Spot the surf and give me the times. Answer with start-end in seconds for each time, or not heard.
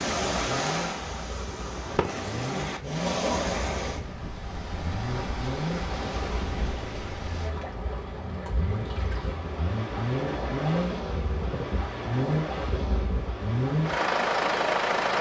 0.0-14.8.